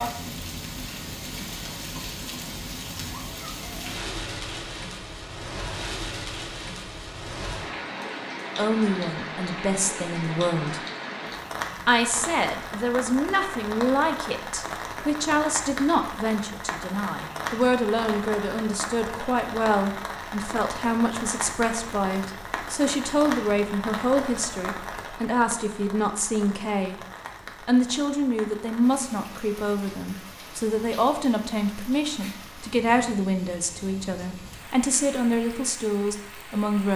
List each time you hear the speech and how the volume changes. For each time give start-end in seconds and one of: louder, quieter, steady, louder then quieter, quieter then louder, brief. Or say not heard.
8.6-10.8 brief
11.8-26.9 steady
27.6-36.9 steady.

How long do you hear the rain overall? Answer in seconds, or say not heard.
37 s.